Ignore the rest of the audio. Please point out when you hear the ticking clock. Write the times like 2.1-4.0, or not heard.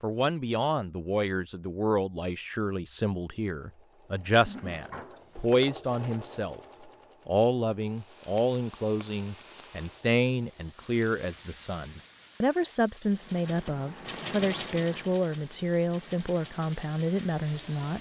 not heard.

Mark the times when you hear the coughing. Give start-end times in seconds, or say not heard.
4.5-5.3.